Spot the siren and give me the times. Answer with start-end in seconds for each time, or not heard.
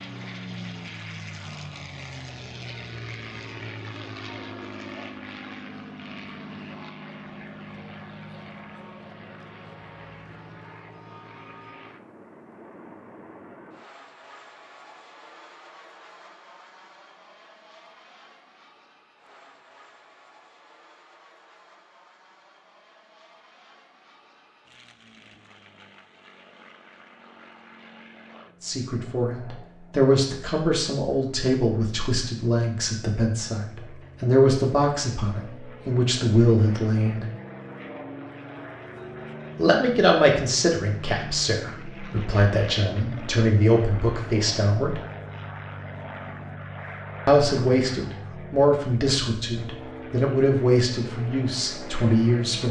not heard.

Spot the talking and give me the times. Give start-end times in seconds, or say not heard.
28.6-37.2, 39.5-45.0, 47.2-52.6.